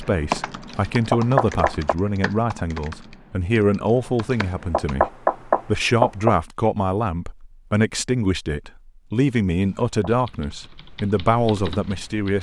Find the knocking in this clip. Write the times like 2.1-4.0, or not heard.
1.1-1.9, 4.3-6.3, 9.6-10.1.